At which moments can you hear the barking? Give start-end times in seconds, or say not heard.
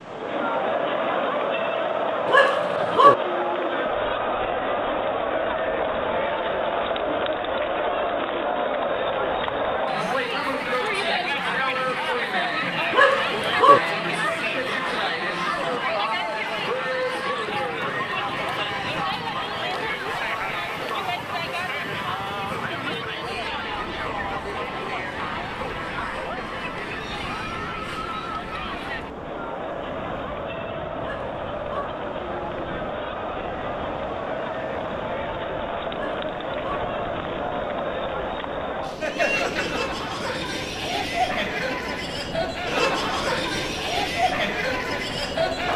2.2-3.1, 12.9-13.8, 31.0-31.9, 35.9-36.8.